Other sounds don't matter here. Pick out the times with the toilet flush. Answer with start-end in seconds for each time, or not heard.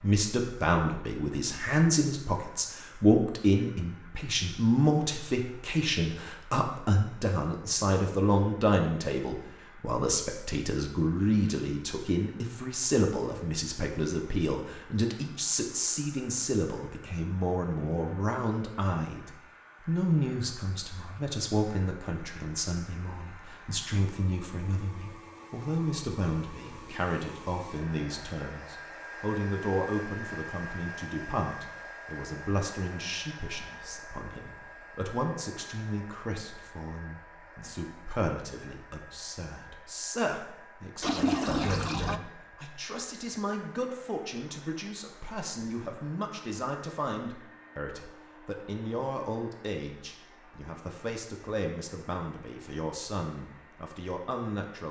41.0-42.2.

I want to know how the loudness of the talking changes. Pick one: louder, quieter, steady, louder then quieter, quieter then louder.
quieter.